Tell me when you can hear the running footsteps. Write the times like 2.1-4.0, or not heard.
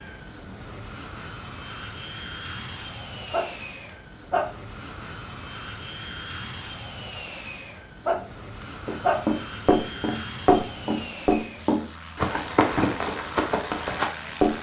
8.8-14.5.